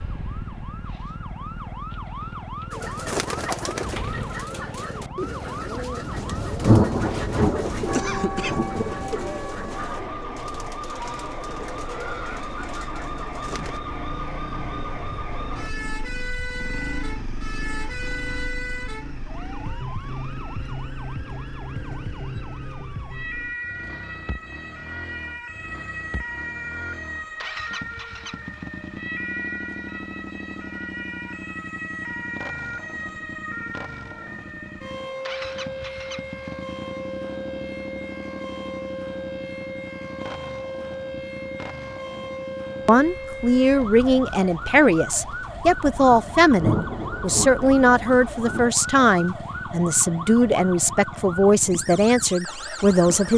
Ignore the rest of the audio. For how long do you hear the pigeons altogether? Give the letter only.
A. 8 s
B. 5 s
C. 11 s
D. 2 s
C.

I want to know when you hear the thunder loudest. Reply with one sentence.
The volume of the thunder peaks at 7 seconds.